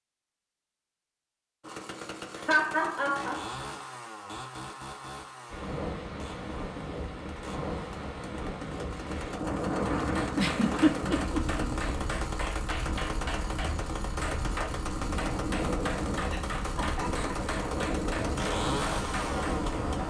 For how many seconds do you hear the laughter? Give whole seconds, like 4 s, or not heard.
3 s.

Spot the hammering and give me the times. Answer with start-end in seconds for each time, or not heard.
10.0-19.7.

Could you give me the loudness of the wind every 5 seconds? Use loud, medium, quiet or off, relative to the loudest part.
off, loud, loud, loud.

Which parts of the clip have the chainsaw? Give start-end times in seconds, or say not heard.
1.6-20.0.